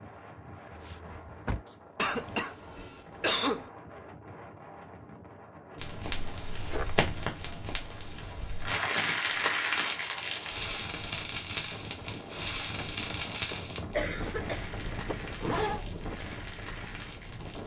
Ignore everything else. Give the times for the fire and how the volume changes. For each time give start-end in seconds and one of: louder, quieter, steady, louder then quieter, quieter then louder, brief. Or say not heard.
5.8-17.6 louder then quieter.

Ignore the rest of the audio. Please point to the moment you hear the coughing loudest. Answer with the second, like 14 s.
3 s.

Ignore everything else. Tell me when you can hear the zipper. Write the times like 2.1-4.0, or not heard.
0.7-2.6, 6.2-7.0, 15.1-15.8.